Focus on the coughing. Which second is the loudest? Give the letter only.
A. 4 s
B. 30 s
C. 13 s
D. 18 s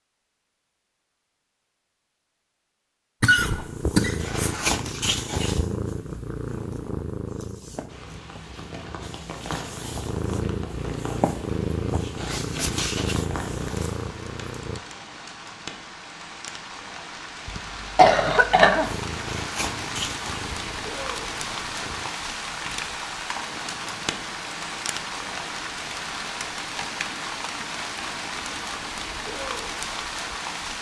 D.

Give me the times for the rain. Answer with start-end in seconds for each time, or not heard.
7.8-30.7.